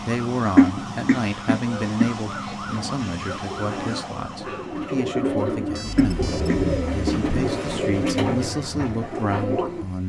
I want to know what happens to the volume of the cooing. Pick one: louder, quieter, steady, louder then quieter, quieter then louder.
louder.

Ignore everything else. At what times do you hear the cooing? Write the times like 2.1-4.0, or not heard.
2.7-9.8.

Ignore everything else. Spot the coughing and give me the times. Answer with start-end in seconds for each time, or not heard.
0.6-2.1, 6.0-6.6.